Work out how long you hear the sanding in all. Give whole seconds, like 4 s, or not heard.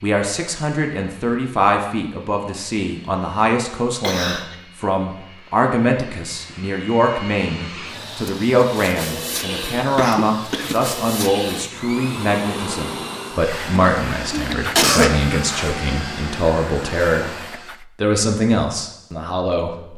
not heard.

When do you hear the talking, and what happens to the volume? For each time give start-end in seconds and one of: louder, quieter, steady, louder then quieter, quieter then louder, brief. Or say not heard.
0.0-17.3 steady
17.9-19.9 brief.